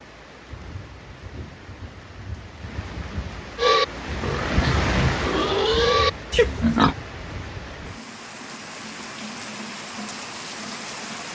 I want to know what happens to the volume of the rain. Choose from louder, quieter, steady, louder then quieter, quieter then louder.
louder then quieter.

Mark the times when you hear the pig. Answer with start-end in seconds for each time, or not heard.
3.5-7.0.